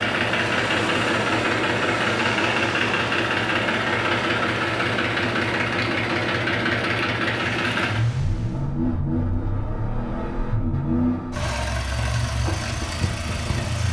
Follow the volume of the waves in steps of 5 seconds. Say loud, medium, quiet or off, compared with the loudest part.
loud, medium, off.